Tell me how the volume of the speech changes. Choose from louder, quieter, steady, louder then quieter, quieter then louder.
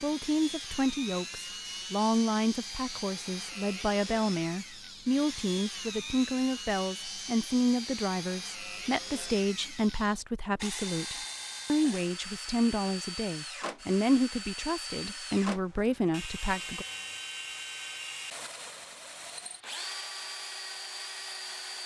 steady.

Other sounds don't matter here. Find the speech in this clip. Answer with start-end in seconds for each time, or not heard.
0.0-16.9.